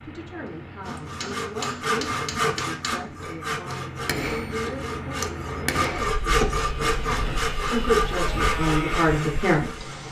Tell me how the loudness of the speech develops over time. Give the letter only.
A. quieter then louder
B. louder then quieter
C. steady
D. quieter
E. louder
E.